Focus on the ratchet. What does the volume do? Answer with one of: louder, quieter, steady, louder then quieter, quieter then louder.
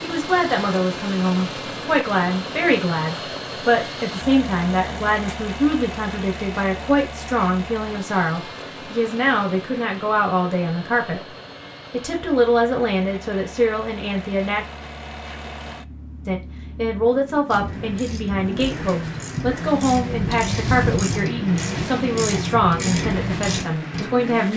louder.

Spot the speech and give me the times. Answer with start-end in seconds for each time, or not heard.
0.0-11.2, 11.9-14.7, 16.2-24.5.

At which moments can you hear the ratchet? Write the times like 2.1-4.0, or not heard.
17.5-24.1.